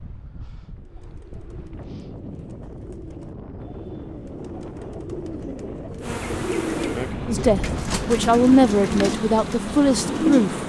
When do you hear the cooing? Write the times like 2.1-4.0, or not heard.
0.8-10.6.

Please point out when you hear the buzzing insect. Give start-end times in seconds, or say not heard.
6.0-10.6.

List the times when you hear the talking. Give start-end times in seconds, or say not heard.
7.2-10.6.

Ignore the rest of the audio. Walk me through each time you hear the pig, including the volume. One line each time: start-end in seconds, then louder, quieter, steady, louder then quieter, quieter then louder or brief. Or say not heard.
not heard.